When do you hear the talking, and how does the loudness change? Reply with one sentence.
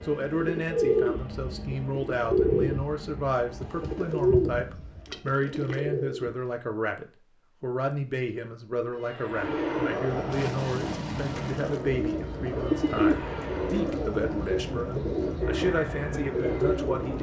You can hear the talking from 0.0 to 17.1 s, at a steady volume.